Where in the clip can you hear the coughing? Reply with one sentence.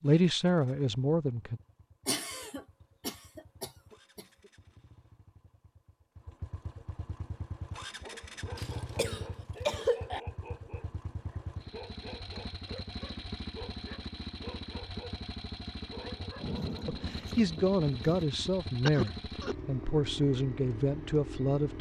The coughing can be heard from 2.0 to 4.2 s, from 8.6 to 10.2 s and from 18.9 to 19.6 s.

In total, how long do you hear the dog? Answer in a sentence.
The dog can be heard for 9 seconds in total.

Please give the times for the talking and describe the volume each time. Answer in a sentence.
The talking can be heard briefly from 0.0 to 1.6 s; and from 16.9 to 21.7 s, at a steady volume.